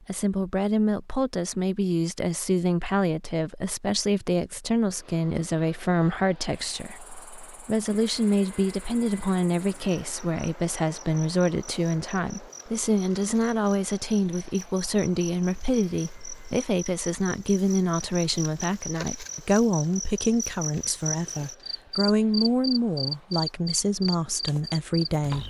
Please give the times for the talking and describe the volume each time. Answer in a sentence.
You can hear the talking from 0.1 to 25.4 s, at a steady volume.